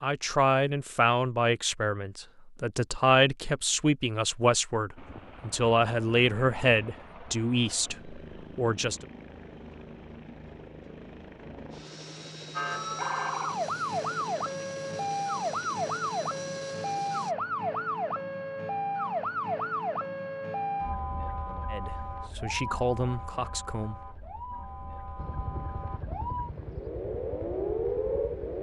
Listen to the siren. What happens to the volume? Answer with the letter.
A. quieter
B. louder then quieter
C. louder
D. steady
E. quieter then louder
E.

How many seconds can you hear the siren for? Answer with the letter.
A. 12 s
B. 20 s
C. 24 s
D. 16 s
D.